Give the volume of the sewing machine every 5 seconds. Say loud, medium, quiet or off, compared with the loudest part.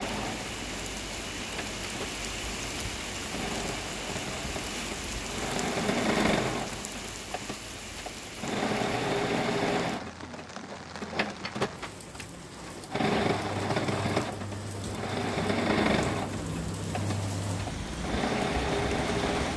medium, loud, loud, loud.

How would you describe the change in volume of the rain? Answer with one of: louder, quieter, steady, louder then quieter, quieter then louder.
quieter then louder.